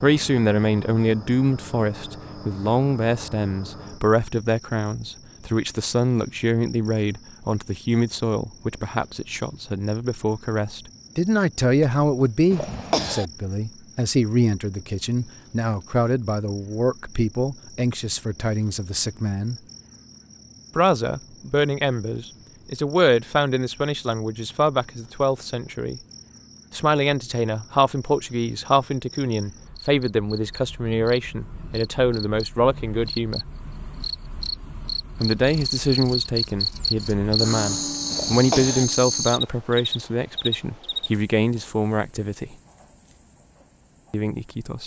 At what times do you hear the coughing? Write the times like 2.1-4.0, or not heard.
12.5-13.2, 38.1-38.9.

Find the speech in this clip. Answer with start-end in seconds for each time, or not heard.
0.0-19.6, 20.8-26.0, 26.7-33.5, 35.2-42.5, 44.1-44.8.